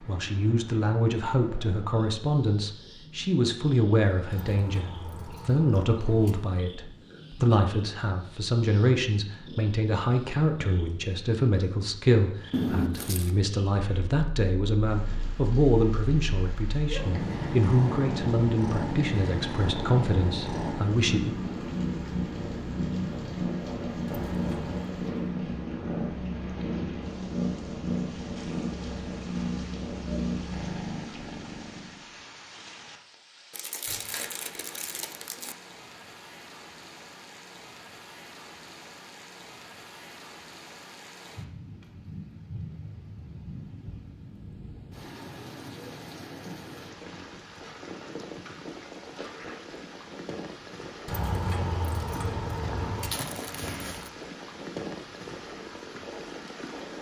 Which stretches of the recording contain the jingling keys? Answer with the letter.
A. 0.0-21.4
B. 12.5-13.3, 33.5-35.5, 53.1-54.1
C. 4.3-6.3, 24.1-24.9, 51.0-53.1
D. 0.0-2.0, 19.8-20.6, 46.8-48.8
C.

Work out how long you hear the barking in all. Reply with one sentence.
You can't hear the barking here.